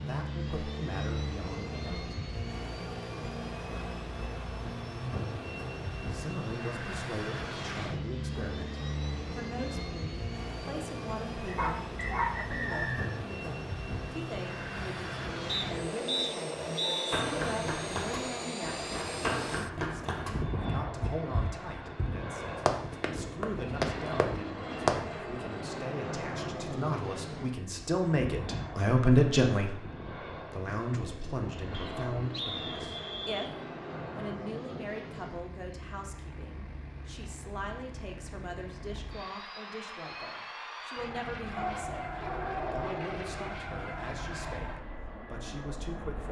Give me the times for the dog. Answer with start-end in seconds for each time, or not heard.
11.6-12.8, 41.5-43.5.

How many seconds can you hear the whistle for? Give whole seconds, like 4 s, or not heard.
5 s.